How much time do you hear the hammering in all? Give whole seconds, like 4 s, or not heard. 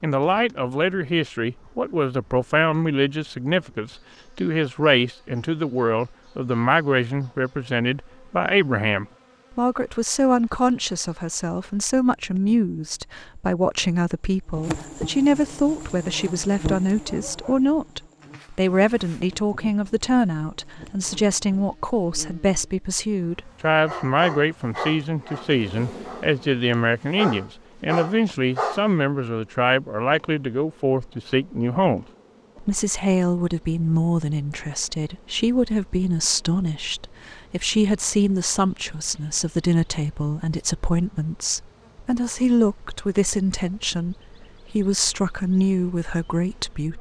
not heard.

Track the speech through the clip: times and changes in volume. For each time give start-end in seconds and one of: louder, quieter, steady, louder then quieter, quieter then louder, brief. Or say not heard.
0.0-46.9 steady.